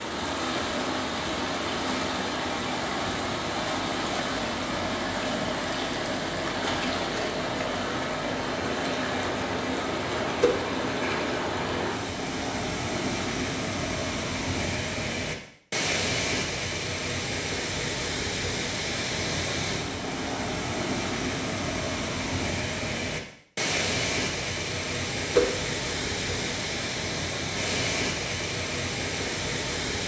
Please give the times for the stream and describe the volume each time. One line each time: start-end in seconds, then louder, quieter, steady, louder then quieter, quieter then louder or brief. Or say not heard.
0.0-30.0 steady.